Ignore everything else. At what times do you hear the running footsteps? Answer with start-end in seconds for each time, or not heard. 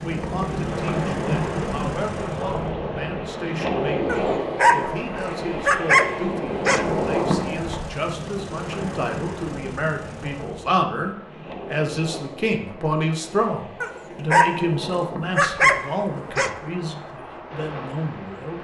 not heard.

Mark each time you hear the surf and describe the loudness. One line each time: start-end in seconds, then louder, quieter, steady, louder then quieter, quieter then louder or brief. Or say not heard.
0.0-18.5 quieter.